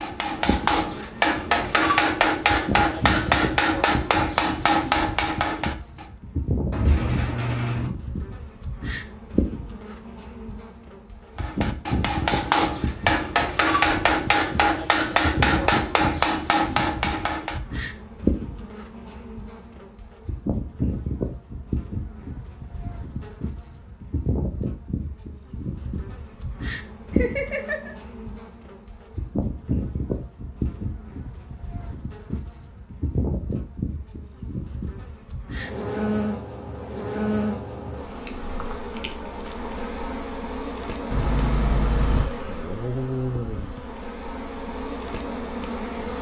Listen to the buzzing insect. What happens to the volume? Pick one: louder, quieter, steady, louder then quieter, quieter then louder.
steady.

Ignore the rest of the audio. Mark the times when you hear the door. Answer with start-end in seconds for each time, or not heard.
6.7-7.9, 41.1-42.3.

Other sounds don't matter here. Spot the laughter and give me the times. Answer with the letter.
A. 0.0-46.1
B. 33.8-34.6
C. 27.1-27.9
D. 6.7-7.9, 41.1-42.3
C.